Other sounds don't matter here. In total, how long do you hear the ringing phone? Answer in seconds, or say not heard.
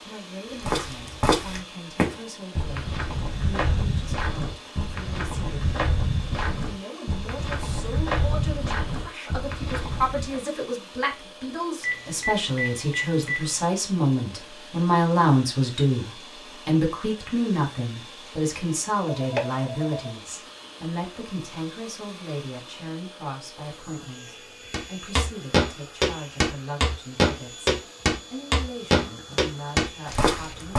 3 s.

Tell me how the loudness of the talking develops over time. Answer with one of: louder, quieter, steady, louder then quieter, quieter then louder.
louder then quieter.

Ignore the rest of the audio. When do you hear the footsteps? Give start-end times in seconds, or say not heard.
0.6-10.3, 24.7-30.7.